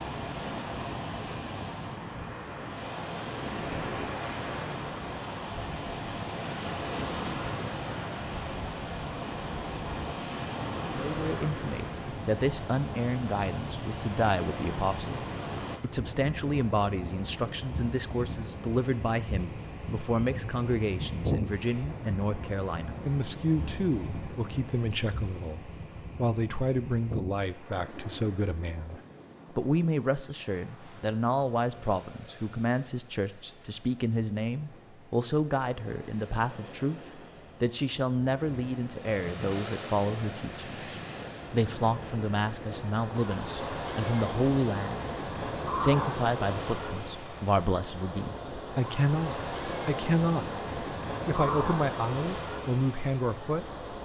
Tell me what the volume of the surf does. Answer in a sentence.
The loudness of the surf goes down, then up.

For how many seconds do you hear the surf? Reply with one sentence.
You can hear the surf for 54 seconds altogether.